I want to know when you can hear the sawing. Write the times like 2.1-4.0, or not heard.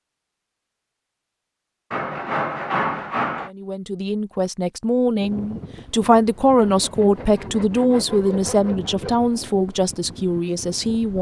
1.9-3.5, 6.5-9.3.